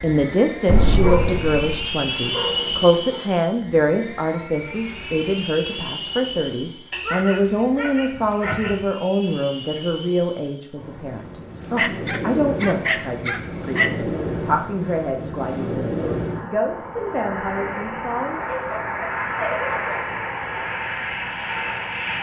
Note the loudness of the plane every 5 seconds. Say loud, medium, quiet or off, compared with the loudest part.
loud, medium, loud, loud, loud.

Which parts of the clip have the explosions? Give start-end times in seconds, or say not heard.
0.7-1.9.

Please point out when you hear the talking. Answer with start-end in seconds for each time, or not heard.
0.0-18.4.